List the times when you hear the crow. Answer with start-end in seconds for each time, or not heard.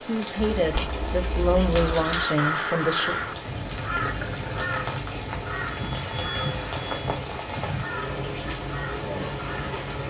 1.8-9.8.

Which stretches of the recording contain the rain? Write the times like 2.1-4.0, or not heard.
0.0-10.0.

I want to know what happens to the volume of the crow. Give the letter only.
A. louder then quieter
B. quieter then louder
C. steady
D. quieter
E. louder
D.